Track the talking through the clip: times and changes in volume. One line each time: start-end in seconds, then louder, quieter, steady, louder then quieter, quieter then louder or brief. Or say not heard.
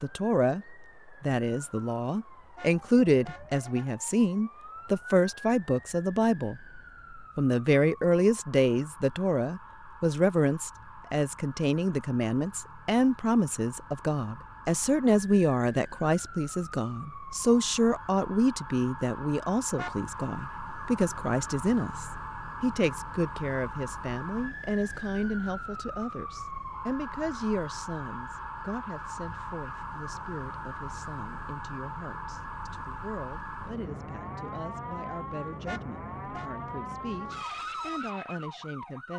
0.0-39.1 quieter.